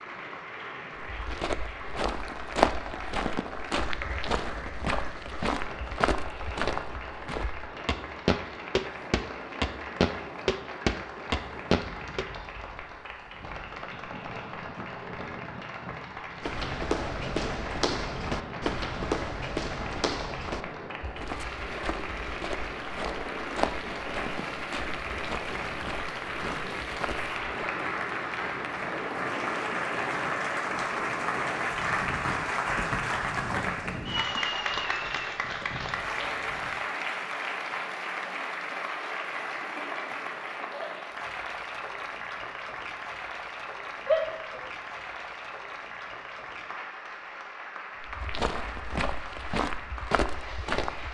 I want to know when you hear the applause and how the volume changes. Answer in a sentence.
You can hear the applause from 0.0 to 51.0 s, getting louder then quieter.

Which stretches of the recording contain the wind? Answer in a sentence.
The wind can be heard from 0.0 to 36.8 s.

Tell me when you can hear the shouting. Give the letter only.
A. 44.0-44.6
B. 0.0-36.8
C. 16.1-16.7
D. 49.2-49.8
A.